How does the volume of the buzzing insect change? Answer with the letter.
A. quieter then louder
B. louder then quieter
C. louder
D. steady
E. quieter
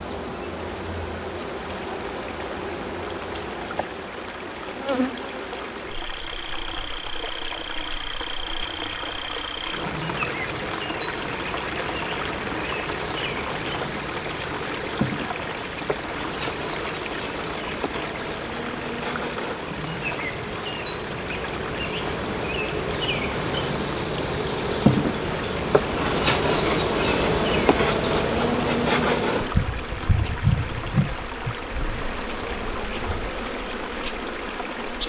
C.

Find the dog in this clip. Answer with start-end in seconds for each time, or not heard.
not heard.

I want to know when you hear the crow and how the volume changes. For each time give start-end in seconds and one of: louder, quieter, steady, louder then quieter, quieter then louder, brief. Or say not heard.
not heard.